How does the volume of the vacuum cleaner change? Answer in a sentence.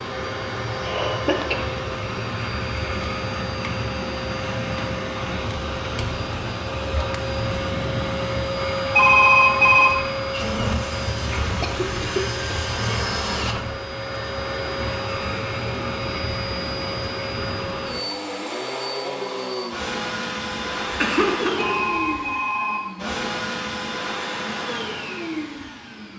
The loudness of the vacuum cleaner stays about the same.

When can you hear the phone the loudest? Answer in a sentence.
The loudest moment of the phone is at 9 seconds.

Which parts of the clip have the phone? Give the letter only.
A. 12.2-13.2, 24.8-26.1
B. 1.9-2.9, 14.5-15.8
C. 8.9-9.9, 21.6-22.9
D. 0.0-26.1
C.